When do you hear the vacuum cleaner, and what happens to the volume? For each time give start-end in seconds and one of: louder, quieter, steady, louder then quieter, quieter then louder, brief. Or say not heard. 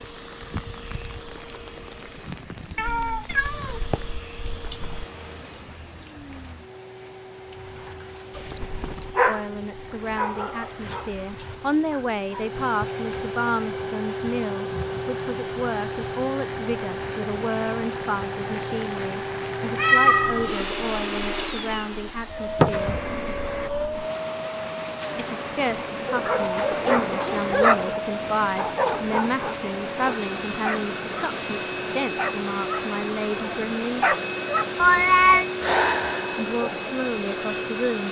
0.0-38.0 louder.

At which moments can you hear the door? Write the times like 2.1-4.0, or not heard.
22.6-23.1.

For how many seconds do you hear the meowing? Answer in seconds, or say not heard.
4 s.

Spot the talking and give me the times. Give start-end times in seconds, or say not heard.
9.2-23.1, 25.1-34.1, 36.4-38.0.